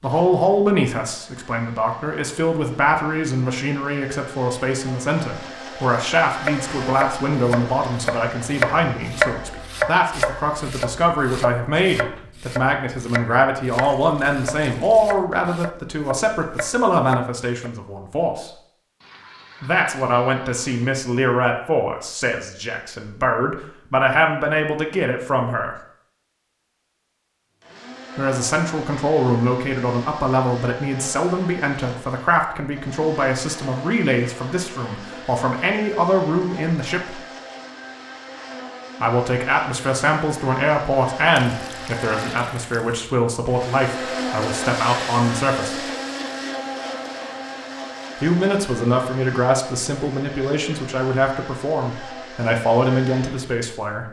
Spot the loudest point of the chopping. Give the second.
9 s.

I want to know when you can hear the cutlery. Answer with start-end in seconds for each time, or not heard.
not heard.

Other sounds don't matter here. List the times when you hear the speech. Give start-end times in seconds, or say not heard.
0.0-18.5, 19.6-25.8, 28.1-37.2, 39.0-45.8, 48.2-54.0.